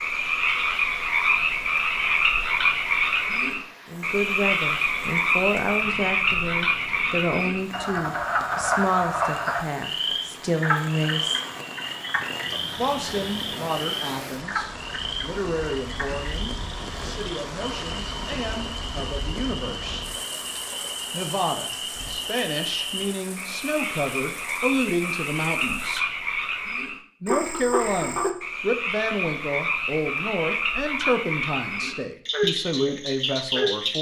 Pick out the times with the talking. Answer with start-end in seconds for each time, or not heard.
3.9-11.4, 12.8-20.1, 21.1-26.1, 27.2-33.9.